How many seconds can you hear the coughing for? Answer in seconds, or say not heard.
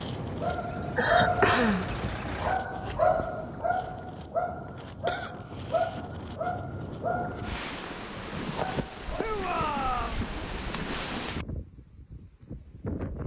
4 s.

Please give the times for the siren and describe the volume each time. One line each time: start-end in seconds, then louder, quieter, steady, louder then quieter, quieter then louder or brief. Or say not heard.
not heard.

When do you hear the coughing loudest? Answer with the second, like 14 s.
1 s.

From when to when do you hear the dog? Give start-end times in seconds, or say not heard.
0.4-9.3.